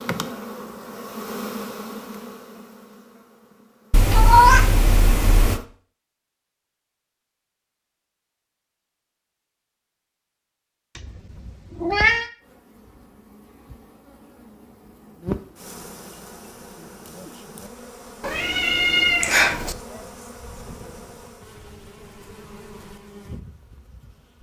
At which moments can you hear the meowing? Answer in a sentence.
You can hear the meowing from 3.9 to 5.6 s, from 10.9 to 12.3 s and from 18.2 to 19.8 s.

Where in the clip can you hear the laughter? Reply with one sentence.
You can't hear the laughter here.